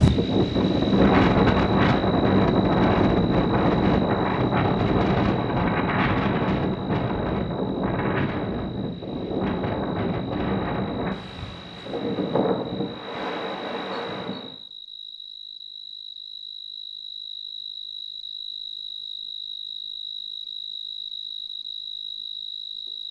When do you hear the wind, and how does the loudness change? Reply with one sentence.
You can hear the wind from 0.0 to 14.6 s, getting quieter.